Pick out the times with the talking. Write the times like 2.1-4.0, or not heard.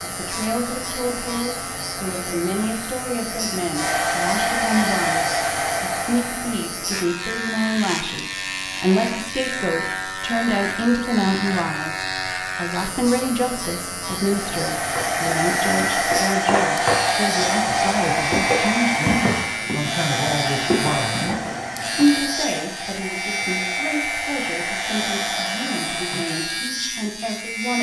0.0-21.4, 21.9-27.7.